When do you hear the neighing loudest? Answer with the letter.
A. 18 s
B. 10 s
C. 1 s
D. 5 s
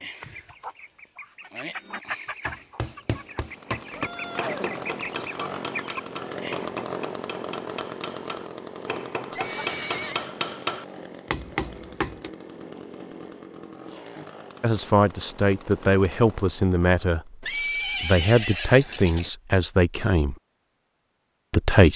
A.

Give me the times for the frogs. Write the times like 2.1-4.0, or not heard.
not heard.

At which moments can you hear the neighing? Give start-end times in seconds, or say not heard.
3.9-5.5, 9.3-10.3, 17.4-19.3.